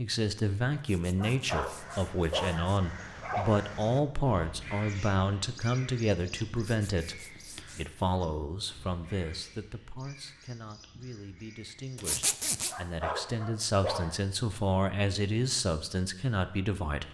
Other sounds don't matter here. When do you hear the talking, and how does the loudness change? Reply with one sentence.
You can hear the talking from 0.0 to 17.0 s, getting quieter then louder.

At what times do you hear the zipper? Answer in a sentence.
The zipper can be heard from 0.8 to 2.8 s, from 6.7 to 8.0 s and from 11.9 to 12.8 s.